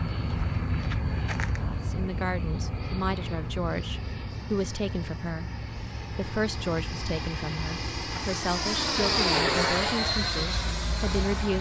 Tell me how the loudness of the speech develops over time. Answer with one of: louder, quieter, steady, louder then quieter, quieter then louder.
steady.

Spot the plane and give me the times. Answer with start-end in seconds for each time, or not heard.
0.0-11.5.